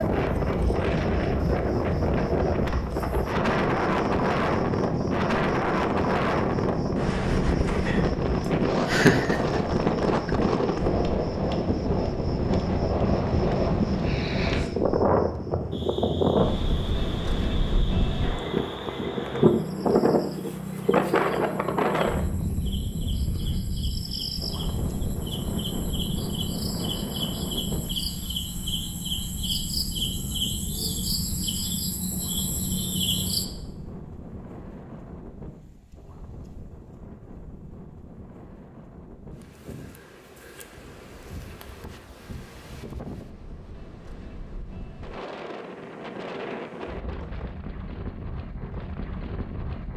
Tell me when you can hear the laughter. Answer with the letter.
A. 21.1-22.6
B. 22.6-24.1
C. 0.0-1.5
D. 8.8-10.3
D.